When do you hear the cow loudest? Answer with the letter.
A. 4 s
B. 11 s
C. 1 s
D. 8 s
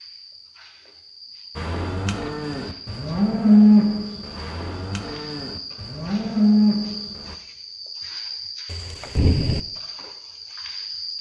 A.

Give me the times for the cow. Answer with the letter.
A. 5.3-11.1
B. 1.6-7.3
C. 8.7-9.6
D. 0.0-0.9
B.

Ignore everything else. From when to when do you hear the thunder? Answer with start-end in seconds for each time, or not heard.
8.7-9.6.